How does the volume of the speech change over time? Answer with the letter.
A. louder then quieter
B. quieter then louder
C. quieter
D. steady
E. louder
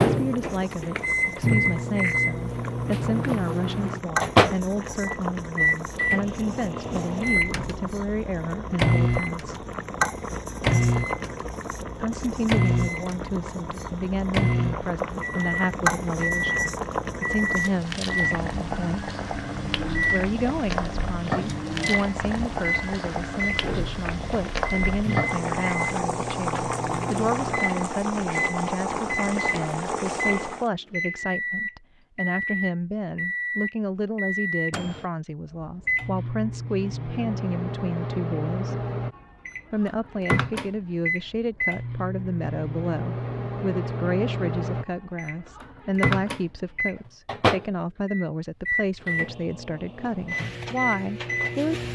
D.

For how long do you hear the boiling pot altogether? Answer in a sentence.
You can hear the boiling pot for 31 seconds altogether.